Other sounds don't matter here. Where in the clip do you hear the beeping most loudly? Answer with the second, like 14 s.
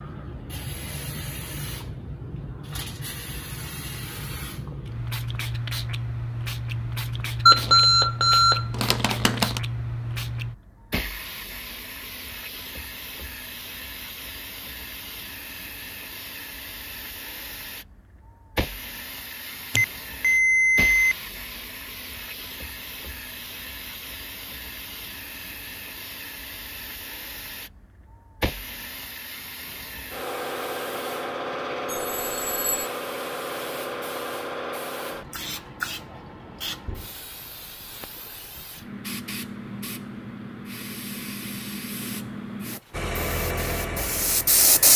8 s.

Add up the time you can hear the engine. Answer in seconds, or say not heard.
2 s.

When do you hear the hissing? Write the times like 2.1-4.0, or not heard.
0.0-44.9.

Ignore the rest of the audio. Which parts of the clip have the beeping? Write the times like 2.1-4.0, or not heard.
7.5-9.6, 19.8-21.1, 31.9-32.9.